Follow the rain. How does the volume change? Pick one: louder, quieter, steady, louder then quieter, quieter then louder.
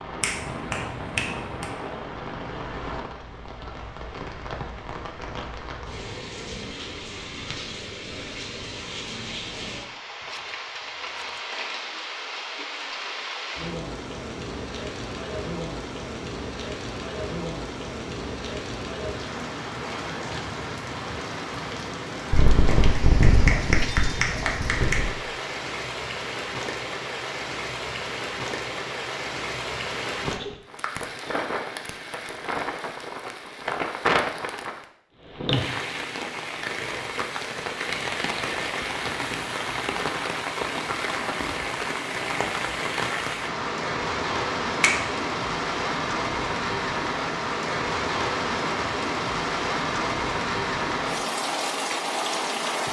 louder.